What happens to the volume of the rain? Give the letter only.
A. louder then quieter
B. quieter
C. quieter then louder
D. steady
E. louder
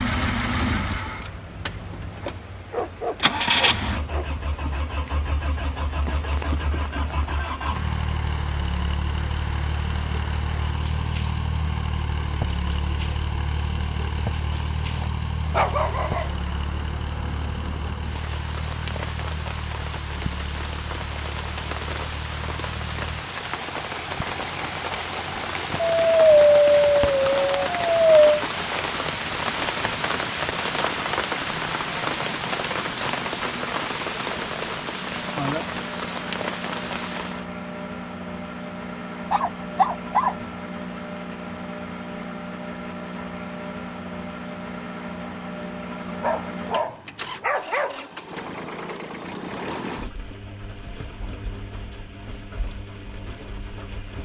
E.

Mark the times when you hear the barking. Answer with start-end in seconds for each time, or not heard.
2.7-4.3, 14.9-16.4, 25.8-28.2, 39.3-40.4, 46.0-48.0.